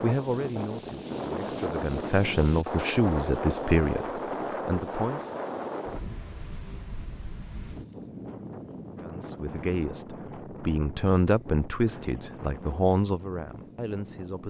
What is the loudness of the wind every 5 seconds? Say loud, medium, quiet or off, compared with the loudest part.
loud, medium, medium.